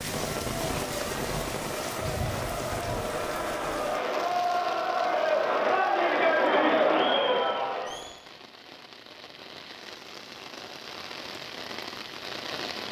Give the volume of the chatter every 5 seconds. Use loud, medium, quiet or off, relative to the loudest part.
medium, loud, off.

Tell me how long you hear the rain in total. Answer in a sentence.
The rain can be heard for 13 seconds in total.